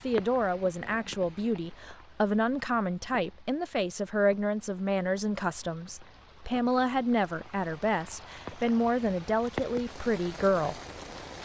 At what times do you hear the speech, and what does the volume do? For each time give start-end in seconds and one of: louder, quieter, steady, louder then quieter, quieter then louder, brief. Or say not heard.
0.0-10.8 steady.